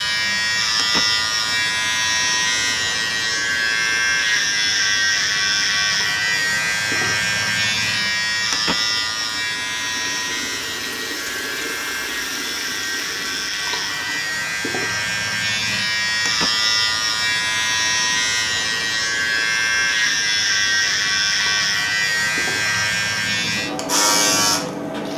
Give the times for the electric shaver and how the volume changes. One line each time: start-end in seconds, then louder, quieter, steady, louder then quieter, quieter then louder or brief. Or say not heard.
0.0-25.1 quieter then louder.